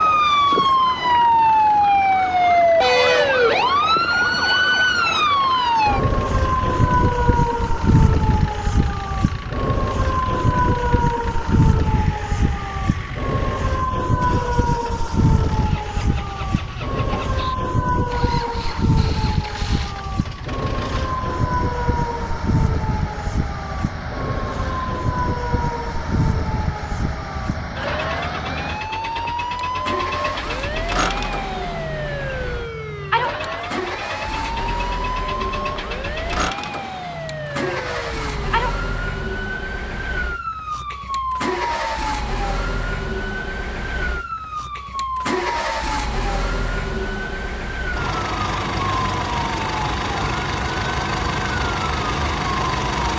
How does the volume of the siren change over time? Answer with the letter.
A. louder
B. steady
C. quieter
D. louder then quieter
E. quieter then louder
C.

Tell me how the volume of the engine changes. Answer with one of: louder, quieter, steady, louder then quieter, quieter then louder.
louder.